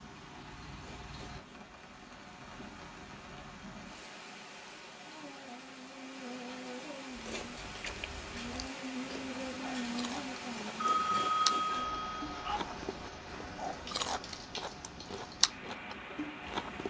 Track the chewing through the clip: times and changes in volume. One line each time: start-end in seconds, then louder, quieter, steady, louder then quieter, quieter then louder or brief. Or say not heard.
7.1-16.8 louder.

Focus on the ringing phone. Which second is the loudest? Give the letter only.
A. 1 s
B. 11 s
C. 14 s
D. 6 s
B.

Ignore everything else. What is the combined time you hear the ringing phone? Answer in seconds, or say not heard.
2 s.